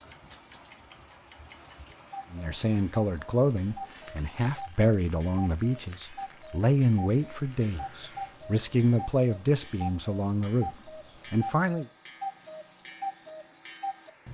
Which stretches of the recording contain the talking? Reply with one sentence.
The talking can be heard from 2.3 to 11.8 s.